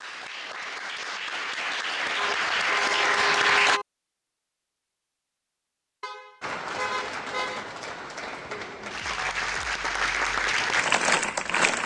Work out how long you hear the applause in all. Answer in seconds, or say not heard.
9 s.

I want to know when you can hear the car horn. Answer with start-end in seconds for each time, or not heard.
2.1-3.9, 6.0-7.7.